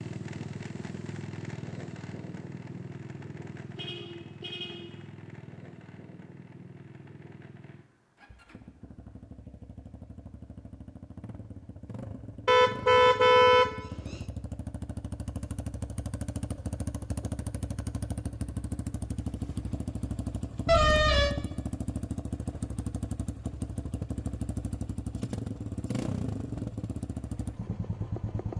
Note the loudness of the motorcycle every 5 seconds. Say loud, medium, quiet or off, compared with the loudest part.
medium, quiet, medium, loud, loud, loud.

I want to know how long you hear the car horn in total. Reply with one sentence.
You can hear the car horn for 4 seconds altogether.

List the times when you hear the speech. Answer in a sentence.
You can't hear the speech here.